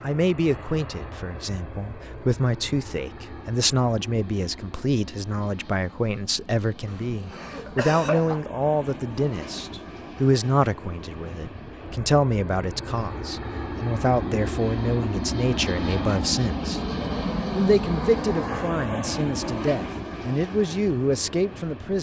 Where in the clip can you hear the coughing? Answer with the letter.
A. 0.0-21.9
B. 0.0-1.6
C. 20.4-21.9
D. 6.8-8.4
D.